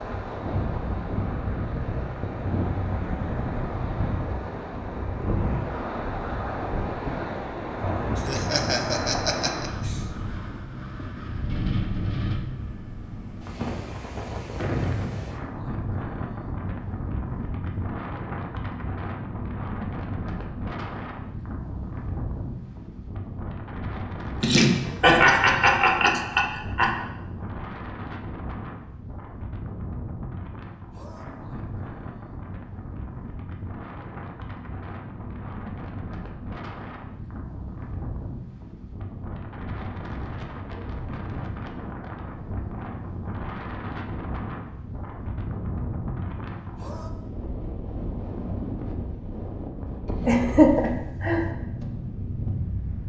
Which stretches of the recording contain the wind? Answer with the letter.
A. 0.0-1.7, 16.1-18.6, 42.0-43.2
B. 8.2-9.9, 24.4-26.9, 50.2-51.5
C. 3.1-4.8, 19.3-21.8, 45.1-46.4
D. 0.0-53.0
D.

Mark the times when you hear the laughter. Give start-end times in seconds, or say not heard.
8.2-9.9, 24.4-26.9, 50.2-51.5.